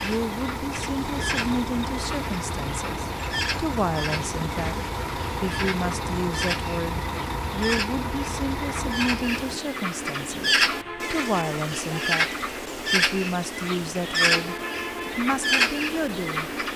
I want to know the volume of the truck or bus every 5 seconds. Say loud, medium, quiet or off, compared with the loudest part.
loud, loud, medium, medium.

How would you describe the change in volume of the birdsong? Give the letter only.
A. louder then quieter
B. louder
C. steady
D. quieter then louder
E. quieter
B.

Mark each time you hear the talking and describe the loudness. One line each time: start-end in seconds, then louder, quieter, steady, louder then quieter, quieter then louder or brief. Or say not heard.
0.0-16.5 steady.